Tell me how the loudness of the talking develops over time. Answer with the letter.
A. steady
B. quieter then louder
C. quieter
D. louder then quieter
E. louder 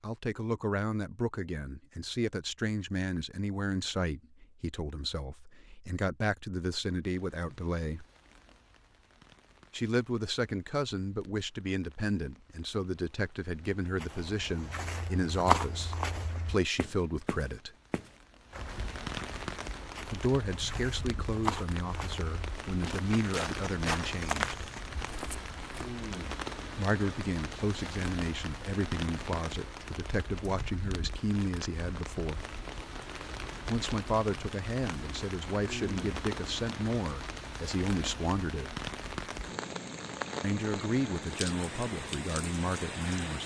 A.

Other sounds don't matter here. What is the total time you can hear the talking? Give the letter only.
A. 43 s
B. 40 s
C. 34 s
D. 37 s
C.